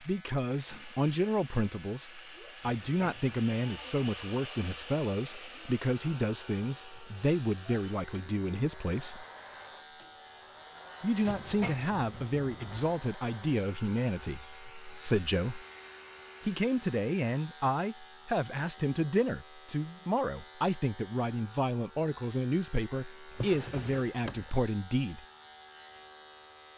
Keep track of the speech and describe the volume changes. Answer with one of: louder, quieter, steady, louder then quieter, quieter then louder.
steady.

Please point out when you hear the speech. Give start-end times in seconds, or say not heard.
0.0-9.2, 11.0-15.7, 16.4-25.2.